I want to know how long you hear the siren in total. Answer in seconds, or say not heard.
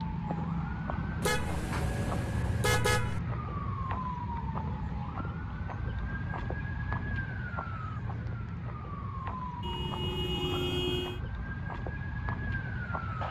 13 s.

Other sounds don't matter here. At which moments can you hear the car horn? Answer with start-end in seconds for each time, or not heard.
1.2-3.2, 9.6-11.2.